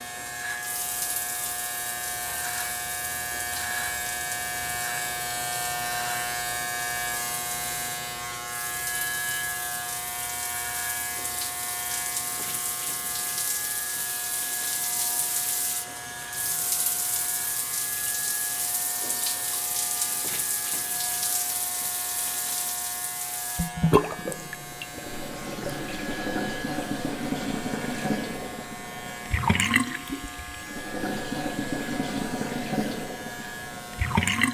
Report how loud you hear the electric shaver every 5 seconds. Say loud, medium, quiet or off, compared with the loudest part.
loud, loud, medium, medium, medium, medium, medium.